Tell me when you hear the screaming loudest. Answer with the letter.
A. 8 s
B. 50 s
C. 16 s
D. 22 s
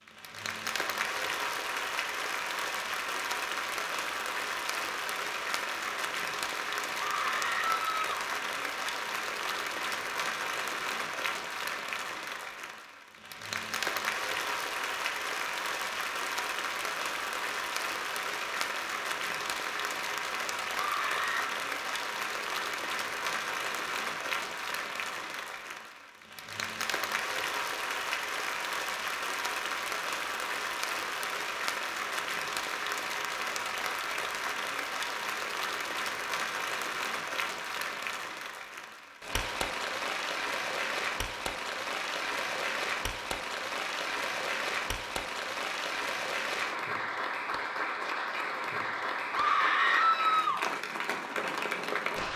B.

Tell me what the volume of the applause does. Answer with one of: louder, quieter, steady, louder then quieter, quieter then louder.
steady.